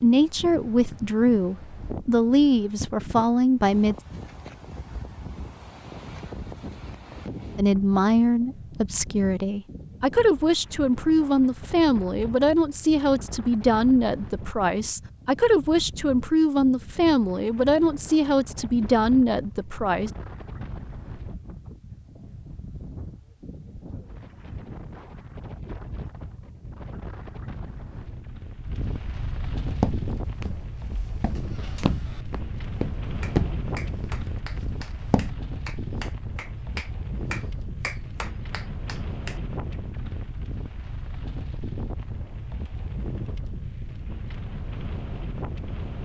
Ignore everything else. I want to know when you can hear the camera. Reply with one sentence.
The camera can't be heard in this clip.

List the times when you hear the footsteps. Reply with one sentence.
The footsteps can be heard from 29.7 to 35.4 s.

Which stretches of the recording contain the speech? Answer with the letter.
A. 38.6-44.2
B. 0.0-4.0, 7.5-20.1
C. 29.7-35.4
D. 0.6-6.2
B.